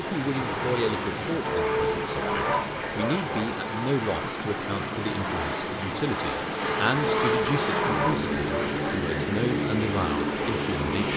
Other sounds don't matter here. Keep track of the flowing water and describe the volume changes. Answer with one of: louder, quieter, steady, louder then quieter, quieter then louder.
steady.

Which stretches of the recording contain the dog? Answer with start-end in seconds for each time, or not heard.
1.4-3.5, 6.9-8.9.